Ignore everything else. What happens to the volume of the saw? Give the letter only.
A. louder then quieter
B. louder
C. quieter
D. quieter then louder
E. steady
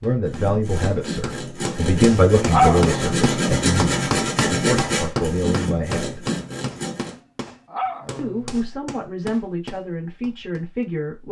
A.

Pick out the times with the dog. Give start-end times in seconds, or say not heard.
2.5-3.2, 7.7-8.6.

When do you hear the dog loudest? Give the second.
3 s.